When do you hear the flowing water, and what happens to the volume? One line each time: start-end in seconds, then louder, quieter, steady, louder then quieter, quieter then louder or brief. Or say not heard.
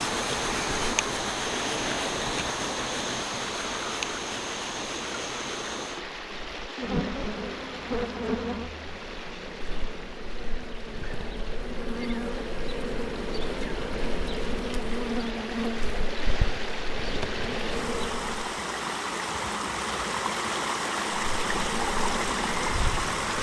0.0-23.3 quieter then louder.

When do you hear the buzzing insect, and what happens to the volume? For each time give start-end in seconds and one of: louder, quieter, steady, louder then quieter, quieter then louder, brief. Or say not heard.
0.0-18.5 steady
21.3-23.3 brief.